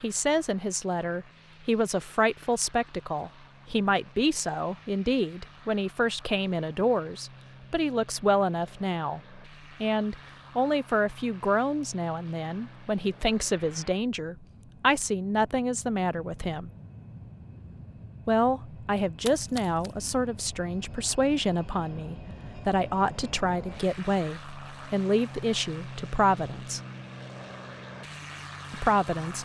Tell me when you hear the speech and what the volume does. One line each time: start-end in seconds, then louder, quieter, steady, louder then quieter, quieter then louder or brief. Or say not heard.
0.0-16.7 steady
18.2-26.8 steady
28.7-29.4 brief.